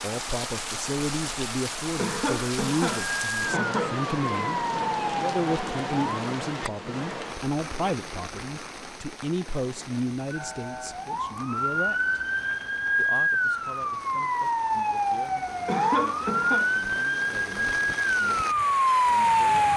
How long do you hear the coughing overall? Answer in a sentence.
The coughing can be heard for 3 seconds in total.